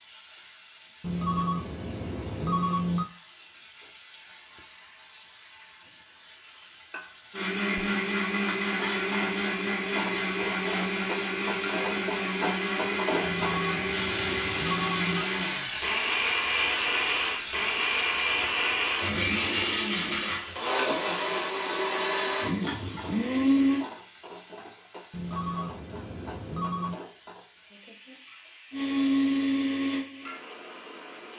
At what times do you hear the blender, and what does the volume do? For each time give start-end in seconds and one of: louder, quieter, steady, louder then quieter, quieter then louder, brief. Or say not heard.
7.3-23.9 steady
28.7-31.3 brief.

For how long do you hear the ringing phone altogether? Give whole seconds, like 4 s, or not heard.
6 s.